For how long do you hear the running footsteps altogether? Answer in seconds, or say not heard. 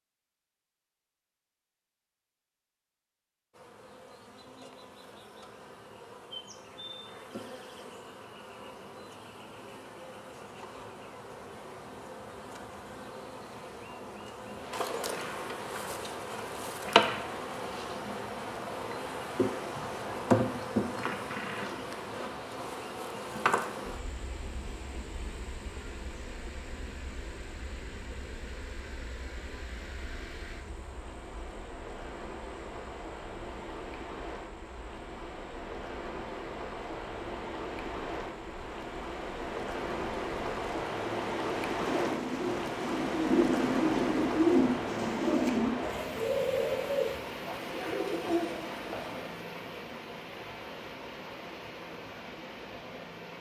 not heard.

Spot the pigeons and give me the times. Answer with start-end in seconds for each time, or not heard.
41.8-49.4.